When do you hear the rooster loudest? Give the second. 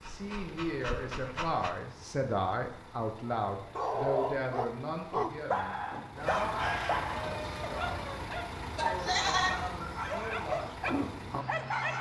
7 s.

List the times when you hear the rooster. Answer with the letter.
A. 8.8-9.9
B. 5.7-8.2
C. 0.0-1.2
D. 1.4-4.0
B.